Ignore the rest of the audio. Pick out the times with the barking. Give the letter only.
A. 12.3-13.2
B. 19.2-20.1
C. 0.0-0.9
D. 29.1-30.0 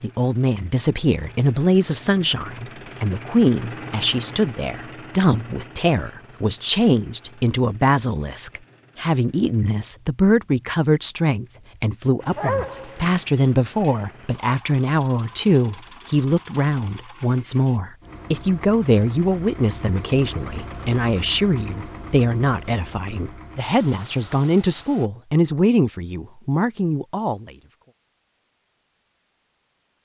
A.